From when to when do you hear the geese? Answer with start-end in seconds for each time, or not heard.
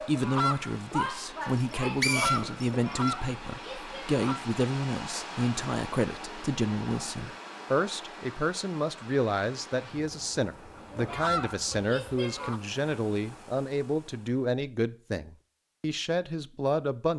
0.0-4.4, 10.8-12.6.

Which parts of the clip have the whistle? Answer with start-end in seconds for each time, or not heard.
1.6-3.1.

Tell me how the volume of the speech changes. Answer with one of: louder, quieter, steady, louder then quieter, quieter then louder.
steady.